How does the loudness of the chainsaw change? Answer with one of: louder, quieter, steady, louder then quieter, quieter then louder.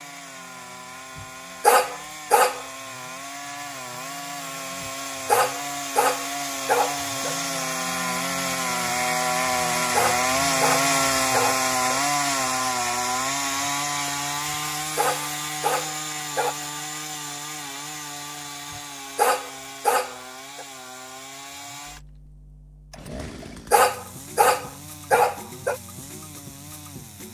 louder then quieter.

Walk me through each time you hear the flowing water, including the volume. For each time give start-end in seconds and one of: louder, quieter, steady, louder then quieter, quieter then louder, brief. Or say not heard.
not heard.